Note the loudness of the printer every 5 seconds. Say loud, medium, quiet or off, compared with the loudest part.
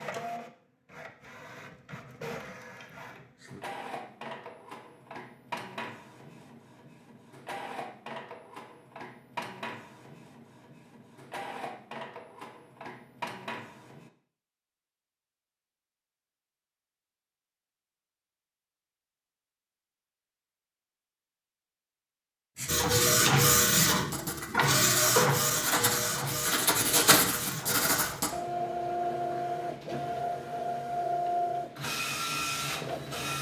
quiet, quiet, quiet, off, loud, medium, medium.